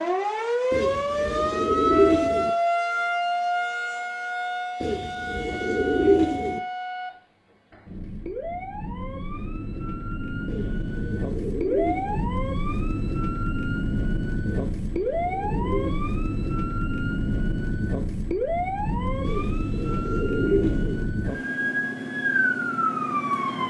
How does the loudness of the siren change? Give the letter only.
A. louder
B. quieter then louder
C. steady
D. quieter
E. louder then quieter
B.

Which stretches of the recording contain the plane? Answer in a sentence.
The plane can't be heard in this clip.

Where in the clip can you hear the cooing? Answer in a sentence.
You can hear the cooing from 0.7 to 2.5 s, from 4.8 to 6.6 s, from 10.4 to 12.3 s, from 14.5 to 16.1 s and from 19.2 to 21.1 s.